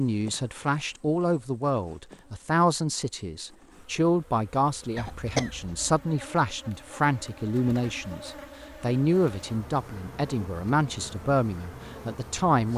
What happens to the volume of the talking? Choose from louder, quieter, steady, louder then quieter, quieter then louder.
steady.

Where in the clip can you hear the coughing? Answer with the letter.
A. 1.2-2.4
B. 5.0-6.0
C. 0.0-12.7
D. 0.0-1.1
B.